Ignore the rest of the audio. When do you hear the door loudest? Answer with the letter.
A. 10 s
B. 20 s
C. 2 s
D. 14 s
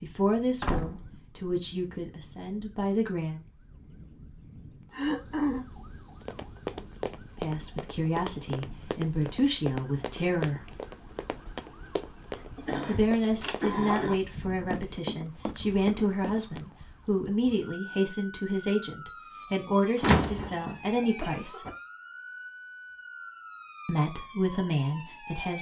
B.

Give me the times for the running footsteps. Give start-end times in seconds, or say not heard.
6.2-16.6.